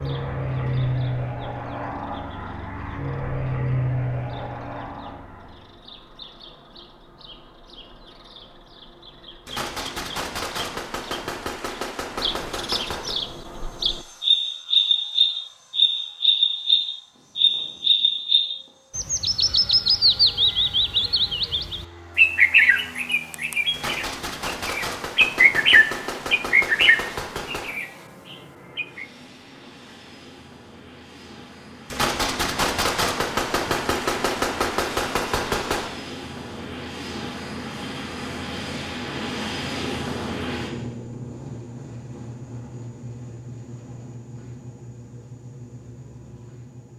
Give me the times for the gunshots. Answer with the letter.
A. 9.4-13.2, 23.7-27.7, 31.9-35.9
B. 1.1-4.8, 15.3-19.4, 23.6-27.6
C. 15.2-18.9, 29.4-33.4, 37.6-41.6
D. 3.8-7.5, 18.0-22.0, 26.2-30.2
A.